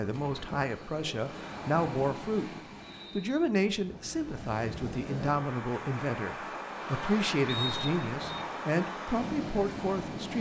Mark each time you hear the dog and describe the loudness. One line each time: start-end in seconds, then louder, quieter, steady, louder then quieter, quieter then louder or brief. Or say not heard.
not heard.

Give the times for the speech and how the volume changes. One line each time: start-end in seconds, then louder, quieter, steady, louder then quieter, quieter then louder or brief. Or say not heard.
0.0-2.5 brief
3.1-10.3 steady.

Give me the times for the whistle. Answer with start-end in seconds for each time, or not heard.
2.8-3.5, 7.5-8.4.